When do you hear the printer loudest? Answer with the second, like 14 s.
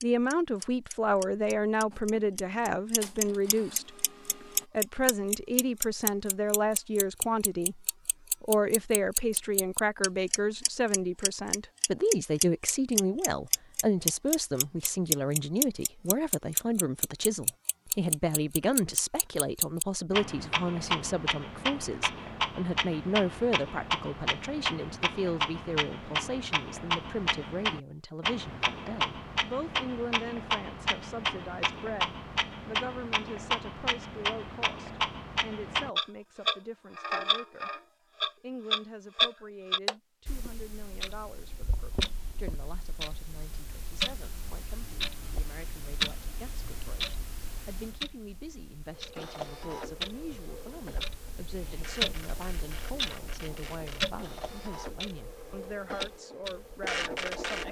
57 s.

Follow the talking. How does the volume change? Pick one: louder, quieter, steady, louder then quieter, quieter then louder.
quieter.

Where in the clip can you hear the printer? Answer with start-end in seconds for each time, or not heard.
1.9-4.7, 49.0-57.6.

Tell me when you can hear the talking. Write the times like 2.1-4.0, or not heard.
0.0-4.0, 4.7-57.6.